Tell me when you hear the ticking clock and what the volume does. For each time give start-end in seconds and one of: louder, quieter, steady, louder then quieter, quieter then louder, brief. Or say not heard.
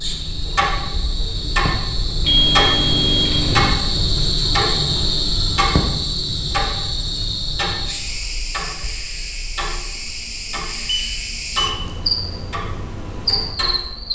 0.0-14.1 quieter.